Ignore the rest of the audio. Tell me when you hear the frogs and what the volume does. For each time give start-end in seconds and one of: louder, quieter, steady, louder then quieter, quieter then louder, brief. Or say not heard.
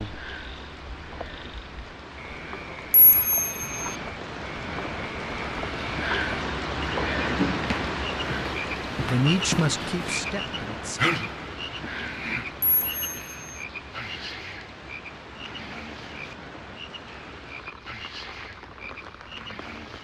0.0-20.0 louder then quieter.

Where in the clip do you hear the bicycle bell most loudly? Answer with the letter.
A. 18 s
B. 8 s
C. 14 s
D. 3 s
D.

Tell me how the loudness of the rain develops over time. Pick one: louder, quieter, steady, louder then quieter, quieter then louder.
louder then quieter.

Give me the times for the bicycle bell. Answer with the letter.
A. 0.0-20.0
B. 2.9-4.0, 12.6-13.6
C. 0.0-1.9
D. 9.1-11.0
B.